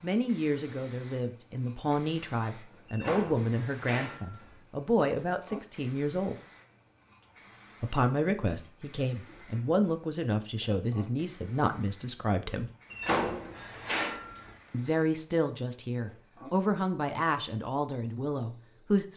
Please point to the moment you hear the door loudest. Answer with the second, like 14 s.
13 s.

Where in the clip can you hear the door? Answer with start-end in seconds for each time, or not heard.
2.9-4.5, 12.9-14.6.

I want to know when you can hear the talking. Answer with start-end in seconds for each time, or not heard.
0.0-6.3, 7.8-12.7, 14.7-19.1.